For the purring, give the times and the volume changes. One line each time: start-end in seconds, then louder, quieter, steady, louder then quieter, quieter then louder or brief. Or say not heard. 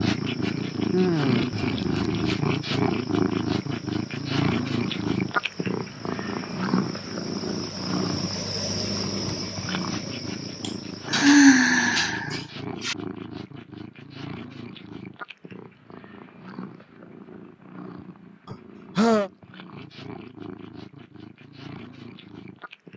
0.0-22.9 quieter.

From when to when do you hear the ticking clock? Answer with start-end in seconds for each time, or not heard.
not heard.